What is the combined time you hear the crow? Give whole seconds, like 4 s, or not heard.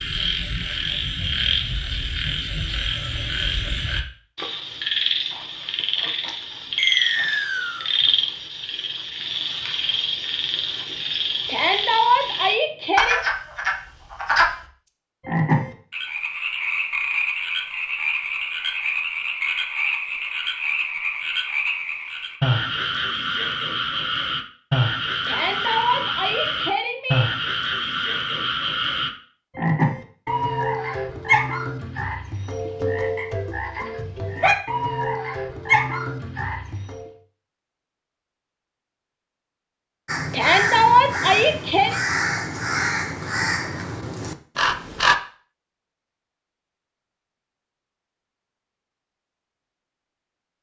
5 s.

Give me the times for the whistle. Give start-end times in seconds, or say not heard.
6.8-7.9.